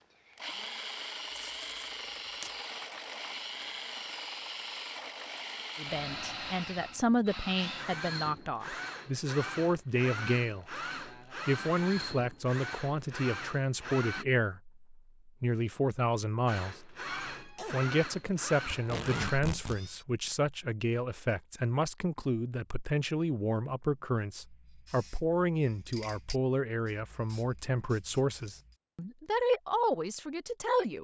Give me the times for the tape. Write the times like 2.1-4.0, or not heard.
1.3-2.5, 18.6-19.8.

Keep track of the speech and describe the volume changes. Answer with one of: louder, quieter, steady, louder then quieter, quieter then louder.
steady.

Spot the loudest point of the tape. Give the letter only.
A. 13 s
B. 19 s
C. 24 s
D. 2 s
B.